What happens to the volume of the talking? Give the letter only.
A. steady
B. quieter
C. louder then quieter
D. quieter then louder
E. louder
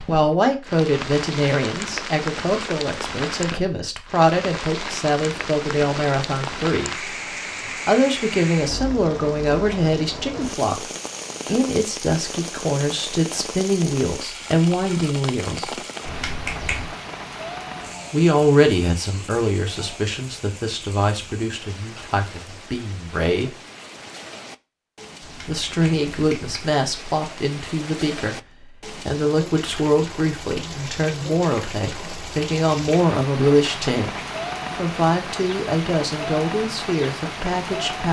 A.